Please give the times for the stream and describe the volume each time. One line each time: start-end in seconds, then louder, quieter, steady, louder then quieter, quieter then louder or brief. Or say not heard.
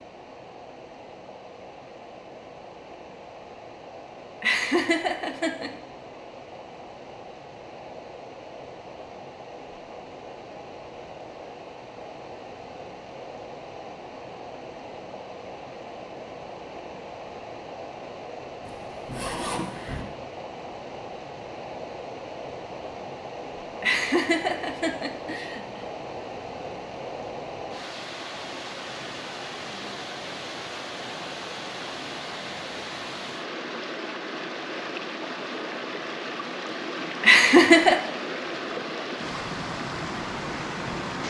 0.0-41.2 louder.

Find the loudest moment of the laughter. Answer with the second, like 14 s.
38 s.